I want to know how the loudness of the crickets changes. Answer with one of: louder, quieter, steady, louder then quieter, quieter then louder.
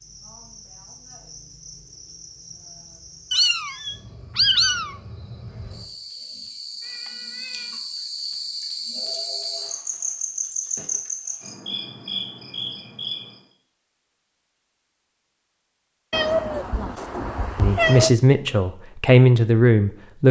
louder.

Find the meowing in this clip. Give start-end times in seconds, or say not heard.
3.3-5.0, 6.8-7.8, 16.1-18.1.